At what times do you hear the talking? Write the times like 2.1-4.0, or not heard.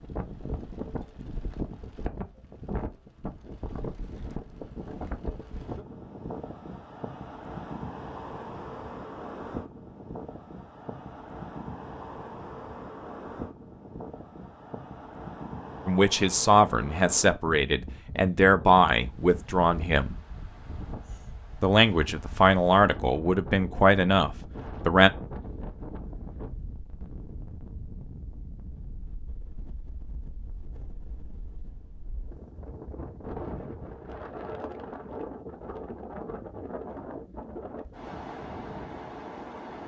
15.8-20.1, 21.6-25.1.